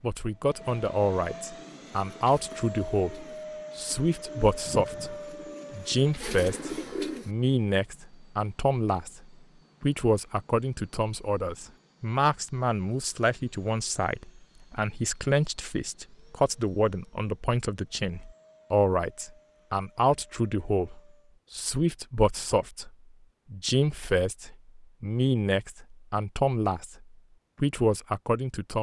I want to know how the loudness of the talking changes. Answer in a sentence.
The volume of the talking stays about the same.